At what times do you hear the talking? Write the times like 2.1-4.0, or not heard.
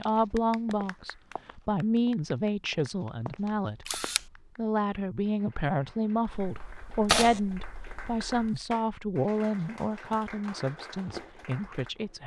0.0-12.2.